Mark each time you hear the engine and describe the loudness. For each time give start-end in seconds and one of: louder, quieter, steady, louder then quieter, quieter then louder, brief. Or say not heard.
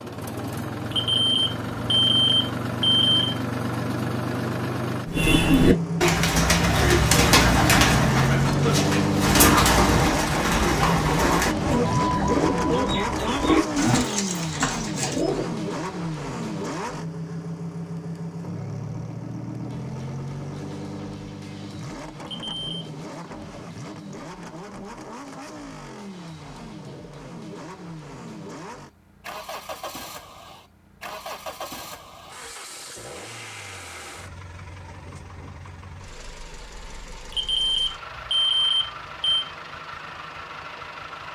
0.0-41.2 quieter.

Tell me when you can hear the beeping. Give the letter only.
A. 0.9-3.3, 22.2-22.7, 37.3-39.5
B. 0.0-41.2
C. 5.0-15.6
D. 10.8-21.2
A.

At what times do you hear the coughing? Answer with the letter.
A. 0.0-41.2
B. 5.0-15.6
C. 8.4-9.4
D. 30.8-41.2
C.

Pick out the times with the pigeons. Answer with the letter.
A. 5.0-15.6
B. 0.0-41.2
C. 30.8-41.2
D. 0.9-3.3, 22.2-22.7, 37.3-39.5
A.